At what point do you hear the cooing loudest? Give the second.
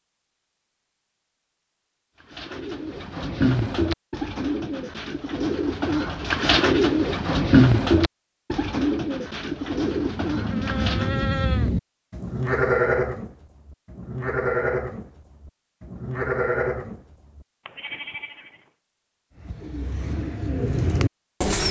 8 s.